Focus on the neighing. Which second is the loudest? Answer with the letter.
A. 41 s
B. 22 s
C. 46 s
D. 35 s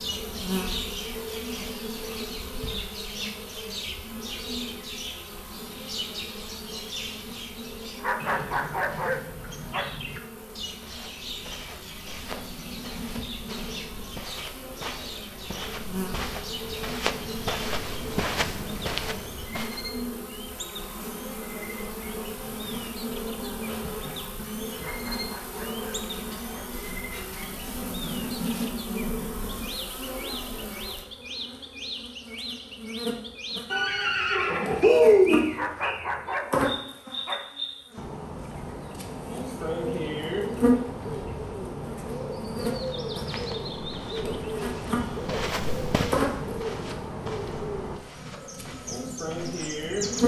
D.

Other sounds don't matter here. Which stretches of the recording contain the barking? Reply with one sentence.
You can hear the barking from 8.0 to 10.0 s, from 24.8 to 26.8 s and from 35.5 to 37.5 s.